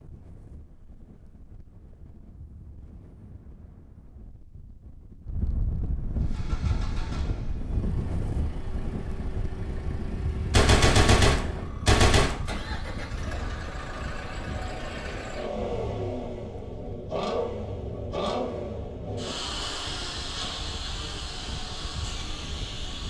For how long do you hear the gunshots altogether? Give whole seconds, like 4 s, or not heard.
2 s.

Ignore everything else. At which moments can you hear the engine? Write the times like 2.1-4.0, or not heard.
6.2-23.0.